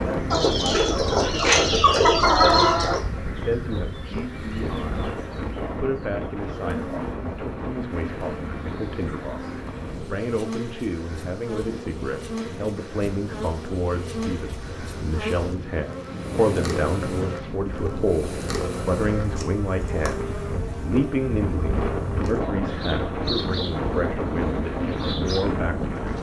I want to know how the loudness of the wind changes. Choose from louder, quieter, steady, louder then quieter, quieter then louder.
quieter then louder.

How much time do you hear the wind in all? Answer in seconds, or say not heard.
26 s.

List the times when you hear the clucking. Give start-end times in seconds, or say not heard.
0.3-3.0.